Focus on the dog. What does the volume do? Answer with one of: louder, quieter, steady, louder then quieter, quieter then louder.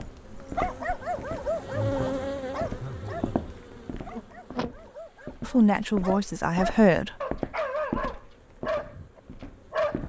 quieter then louder.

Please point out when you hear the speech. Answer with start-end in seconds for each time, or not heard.
5.4-7.2.